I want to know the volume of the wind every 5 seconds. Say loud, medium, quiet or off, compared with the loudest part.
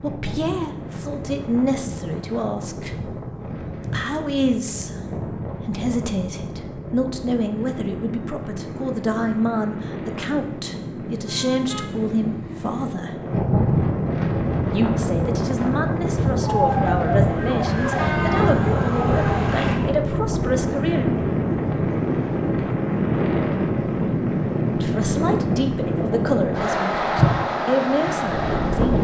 medium, medium, loud, loud, loud, loud.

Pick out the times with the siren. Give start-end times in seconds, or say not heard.
16.4-19.9.